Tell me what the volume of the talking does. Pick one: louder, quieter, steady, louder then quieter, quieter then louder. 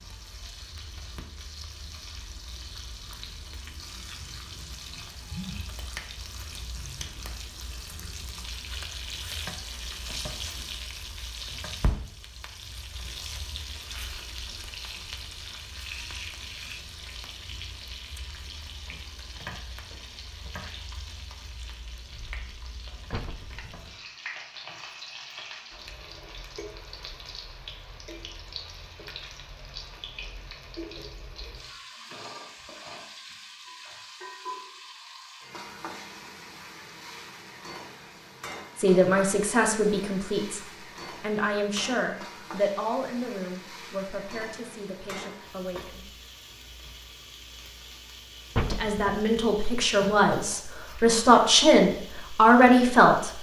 quieter then louder.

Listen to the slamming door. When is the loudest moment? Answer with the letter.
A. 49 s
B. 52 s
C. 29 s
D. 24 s
A.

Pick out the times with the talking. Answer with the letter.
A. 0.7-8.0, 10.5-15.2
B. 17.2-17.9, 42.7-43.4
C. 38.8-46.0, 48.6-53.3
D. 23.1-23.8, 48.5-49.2
C.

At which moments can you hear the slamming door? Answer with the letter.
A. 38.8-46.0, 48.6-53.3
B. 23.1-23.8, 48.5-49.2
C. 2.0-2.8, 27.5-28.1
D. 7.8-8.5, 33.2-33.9
B.